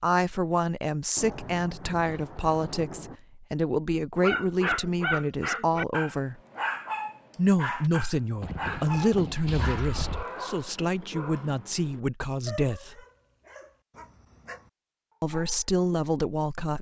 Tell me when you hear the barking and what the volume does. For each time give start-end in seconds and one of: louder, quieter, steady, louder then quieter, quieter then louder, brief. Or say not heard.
4.2-15.8 quieter.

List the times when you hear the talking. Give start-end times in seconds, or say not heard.
0.0-6.4, 7.3-13.0, 15.2-16.7.